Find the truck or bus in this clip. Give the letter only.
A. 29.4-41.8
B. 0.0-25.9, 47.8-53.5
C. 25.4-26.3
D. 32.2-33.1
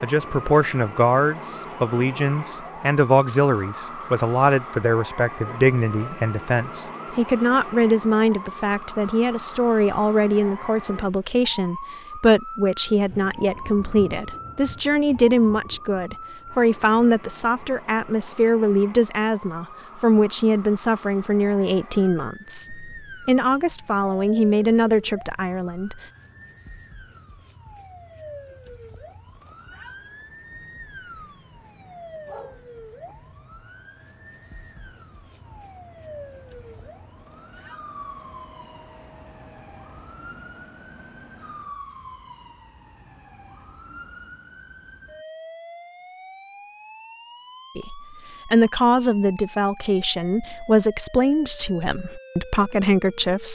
A.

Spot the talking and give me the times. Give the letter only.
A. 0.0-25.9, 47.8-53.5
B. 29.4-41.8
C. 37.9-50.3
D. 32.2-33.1
A.